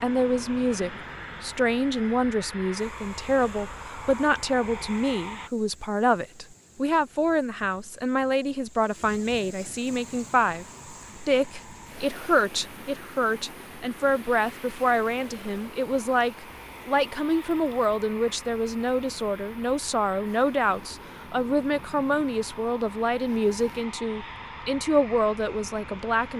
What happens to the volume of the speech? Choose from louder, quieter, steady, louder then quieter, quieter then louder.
steady.